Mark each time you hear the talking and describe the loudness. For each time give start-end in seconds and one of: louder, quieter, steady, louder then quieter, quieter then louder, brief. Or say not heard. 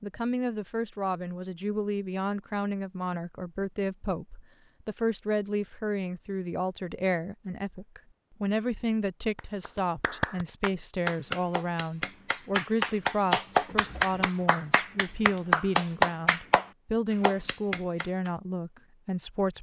0.0-19.5 steady.